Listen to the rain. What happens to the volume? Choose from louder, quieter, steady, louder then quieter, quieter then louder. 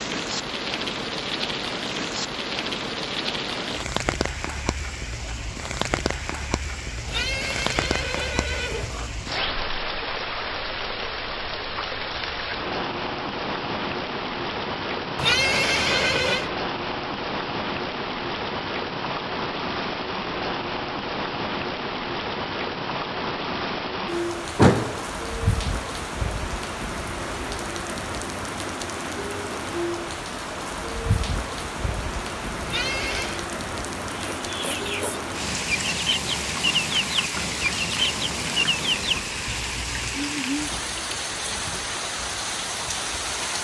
steady.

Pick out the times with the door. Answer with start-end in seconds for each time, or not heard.
24.6-25.0.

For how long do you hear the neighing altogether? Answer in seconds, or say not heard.
4 s.